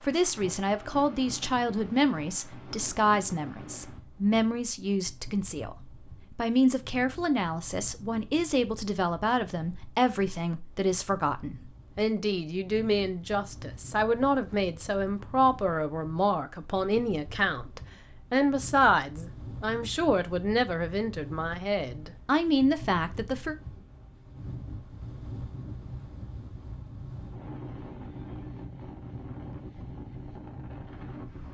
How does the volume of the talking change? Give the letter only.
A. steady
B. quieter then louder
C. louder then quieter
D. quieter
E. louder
A.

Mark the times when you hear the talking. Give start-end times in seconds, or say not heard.
0.0-23.6.